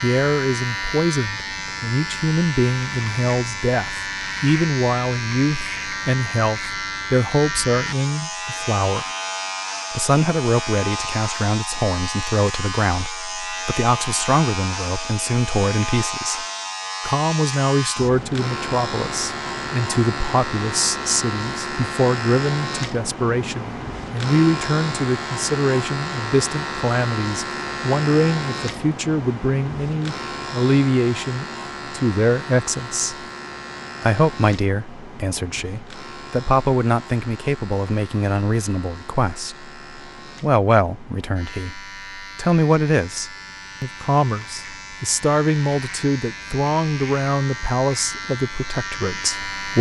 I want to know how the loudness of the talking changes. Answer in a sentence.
The loudness of the talking stays about the same.